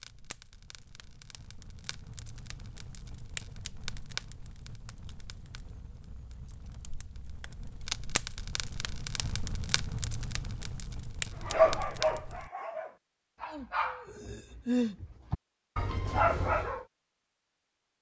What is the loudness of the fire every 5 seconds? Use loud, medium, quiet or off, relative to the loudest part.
medium, loud, loud, off.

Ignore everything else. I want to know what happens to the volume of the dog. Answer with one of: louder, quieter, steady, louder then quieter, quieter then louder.
quieter then louder.